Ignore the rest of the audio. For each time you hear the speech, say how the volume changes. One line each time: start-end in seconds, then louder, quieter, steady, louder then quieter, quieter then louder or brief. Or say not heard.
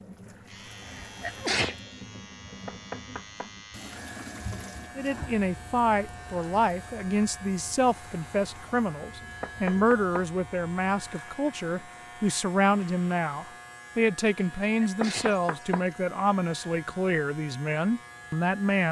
5.0-18.8 steady.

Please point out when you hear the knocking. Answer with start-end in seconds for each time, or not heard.
2.6-3.5, 9.4-10.2, 15.0-15.8.